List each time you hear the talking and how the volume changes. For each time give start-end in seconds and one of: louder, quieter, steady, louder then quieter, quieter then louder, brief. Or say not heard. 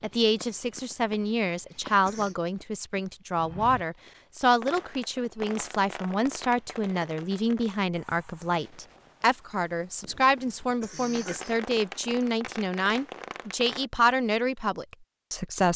0.0-15.7 steady.